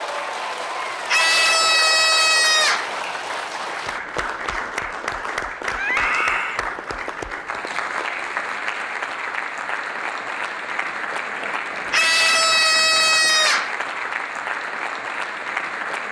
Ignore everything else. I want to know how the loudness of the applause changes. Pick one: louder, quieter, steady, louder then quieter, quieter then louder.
steady.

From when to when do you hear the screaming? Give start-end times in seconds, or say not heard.
1.1-2.9, 5.8-6.6, 11.9-13.7.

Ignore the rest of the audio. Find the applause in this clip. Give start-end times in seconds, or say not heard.
0.0-16.0.